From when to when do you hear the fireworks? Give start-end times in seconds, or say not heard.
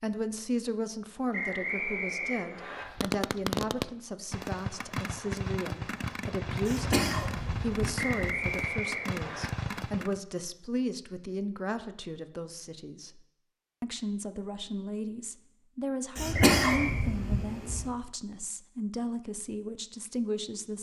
2.8-10.2.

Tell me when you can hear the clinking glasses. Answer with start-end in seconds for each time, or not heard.
not heard.